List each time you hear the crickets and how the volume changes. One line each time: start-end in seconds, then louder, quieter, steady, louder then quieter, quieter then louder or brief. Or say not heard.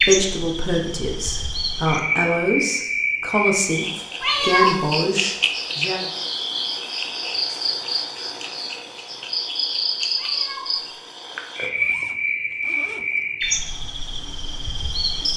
0.0-15.3 steady.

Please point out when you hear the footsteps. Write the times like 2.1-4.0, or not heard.
not heard.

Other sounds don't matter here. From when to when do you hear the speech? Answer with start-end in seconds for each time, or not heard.
0.1-6.0.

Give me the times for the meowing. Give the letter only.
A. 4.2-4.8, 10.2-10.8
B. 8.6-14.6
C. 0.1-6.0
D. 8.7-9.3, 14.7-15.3
A.